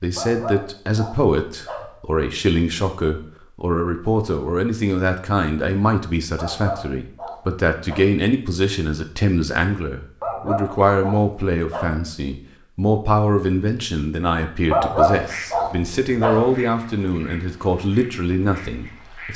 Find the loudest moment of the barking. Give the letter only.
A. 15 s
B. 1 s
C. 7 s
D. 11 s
A.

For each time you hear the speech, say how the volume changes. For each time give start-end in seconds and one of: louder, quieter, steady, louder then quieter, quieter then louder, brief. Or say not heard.
0.0-19.3 steady.